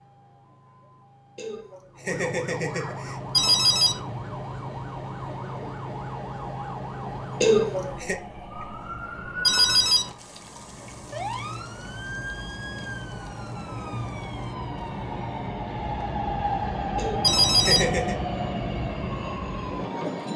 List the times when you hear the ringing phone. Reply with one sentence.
The ringing phone can be heard from 3.3 to 4.0 s, from 9.4 to 10.2 s and from 17.2 to 17.9 s.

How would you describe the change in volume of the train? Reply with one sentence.
The volume of the train goes up.